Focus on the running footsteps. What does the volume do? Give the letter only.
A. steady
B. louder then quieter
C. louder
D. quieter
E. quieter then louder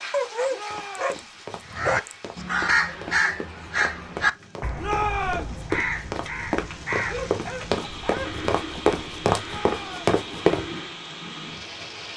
C.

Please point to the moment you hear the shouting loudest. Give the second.
5 s.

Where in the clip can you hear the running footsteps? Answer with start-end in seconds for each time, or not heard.
0.6-10.7.